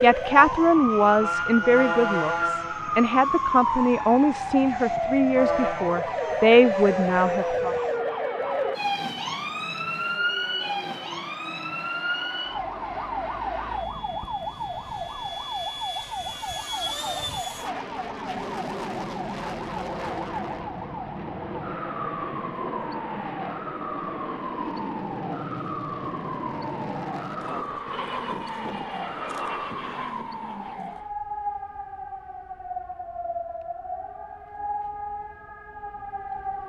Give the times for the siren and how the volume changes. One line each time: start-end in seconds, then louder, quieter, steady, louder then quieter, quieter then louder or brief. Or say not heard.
0.0-36.6 quieter.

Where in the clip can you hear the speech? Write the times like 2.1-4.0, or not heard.
0.0-7.8.